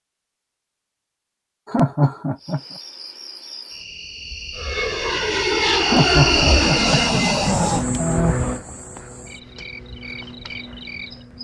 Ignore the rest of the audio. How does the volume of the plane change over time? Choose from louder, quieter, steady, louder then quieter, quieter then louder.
quieter.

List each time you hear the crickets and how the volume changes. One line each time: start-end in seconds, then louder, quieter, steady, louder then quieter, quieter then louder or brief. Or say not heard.
2.4-11.3 louder then quieter.